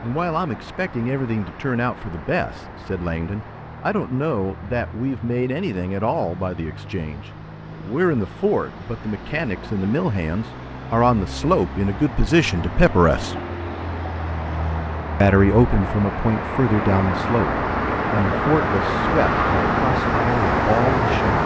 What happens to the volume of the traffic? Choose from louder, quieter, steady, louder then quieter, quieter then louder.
louder.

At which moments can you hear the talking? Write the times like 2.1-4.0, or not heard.
0.0-13.3, 15.2-21.4.